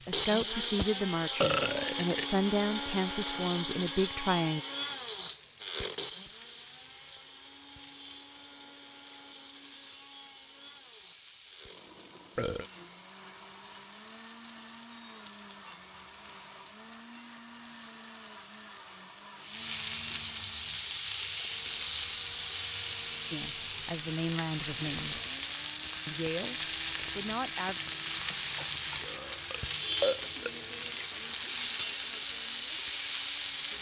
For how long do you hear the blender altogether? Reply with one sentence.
The blender can be heard for 34 seconds in total.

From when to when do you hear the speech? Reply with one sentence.
You can hear the speech from 0.1 to 4.6 s, from 23.3 to 25.2 s, from 26.1 to 26.6 s and from 27.1 to 27.8 s.